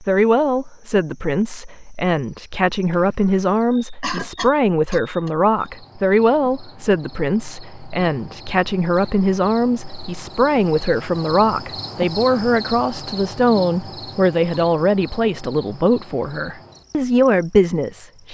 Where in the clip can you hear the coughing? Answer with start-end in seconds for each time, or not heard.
4.0-5.7.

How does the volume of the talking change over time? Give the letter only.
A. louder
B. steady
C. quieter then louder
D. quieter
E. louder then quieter
B.